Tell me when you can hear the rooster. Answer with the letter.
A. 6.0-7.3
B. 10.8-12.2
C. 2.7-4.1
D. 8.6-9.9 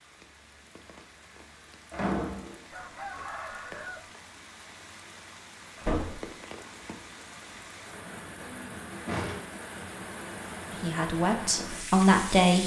C.